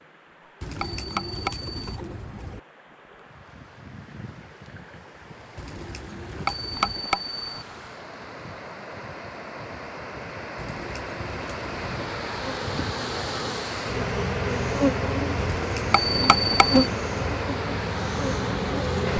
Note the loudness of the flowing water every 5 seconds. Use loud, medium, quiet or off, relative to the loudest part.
quiet, medium, loud, loud.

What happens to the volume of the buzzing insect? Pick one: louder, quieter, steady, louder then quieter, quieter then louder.
louder.